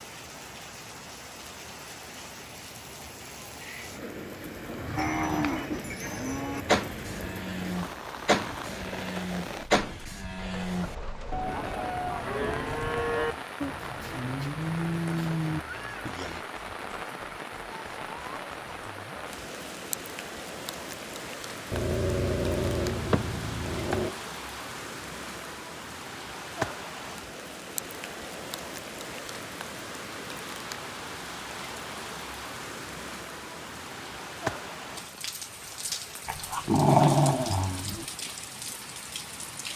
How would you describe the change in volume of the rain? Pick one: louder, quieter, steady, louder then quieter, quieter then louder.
steady.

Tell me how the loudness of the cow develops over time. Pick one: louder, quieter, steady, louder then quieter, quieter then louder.
steady.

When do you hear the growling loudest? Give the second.
37 s.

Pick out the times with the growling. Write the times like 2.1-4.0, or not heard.
3.6-6.0, 21.7-24.1, 36.2-38.0.